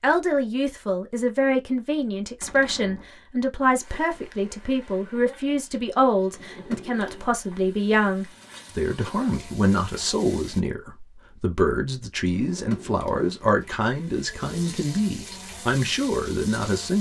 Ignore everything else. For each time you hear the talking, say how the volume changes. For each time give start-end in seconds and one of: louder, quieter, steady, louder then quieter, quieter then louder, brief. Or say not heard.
0.0-16.9 steady.